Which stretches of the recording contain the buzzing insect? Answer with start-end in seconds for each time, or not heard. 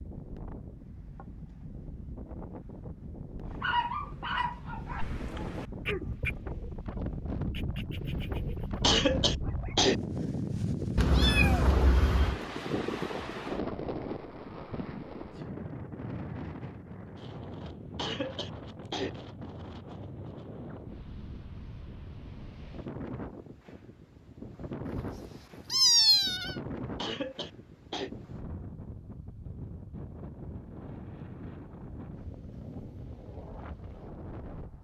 not heard.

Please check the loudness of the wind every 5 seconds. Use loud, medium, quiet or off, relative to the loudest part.
medium, loud, loud, medium, medium, medium, medium.